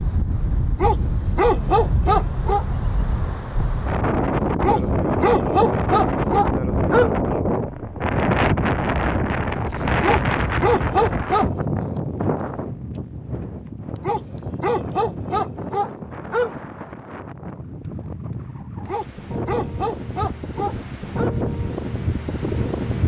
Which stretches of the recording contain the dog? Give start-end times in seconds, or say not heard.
0.8-2.6, 4.6-7.1, 10.0-11.5, 14.0-16.6, 18.9-21.4.